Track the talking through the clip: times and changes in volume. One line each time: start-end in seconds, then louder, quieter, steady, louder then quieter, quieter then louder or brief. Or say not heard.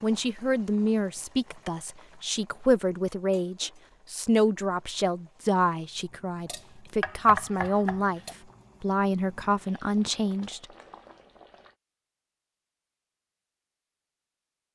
0.0-8.2 steady
8.8-10.7 brief.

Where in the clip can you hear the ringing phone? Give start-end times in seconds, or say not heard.
not heard.